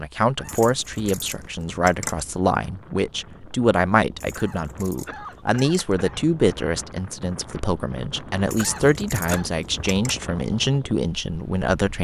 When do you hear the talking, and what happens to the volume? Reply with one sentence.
The talking can be heard from 0.0 to 11.9 s, at a steady volume.